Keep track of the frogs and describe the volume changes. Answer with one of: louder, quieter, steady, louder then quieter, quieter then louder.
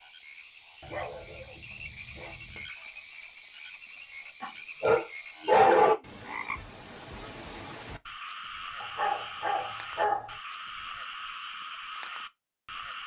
steady.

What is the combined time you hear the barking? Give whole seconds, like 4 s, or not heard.
5 s.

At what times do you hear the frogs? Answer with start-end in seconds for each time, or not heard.
0.0-13.0.